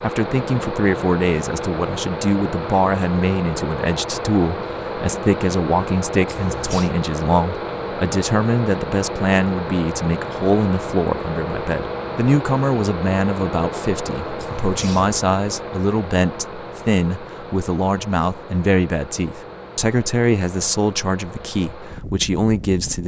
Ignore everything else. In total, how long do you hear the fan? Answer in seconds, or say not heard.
23 s.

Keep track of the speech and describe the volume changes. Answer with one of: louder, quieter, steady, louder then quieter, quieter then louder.
steady.